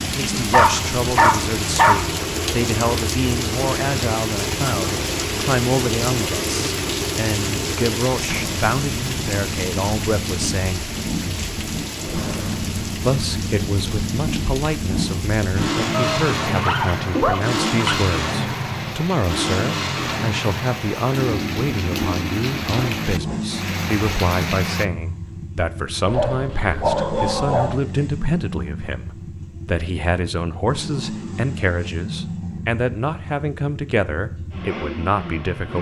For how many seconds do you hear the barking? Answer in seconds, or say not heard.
5 s.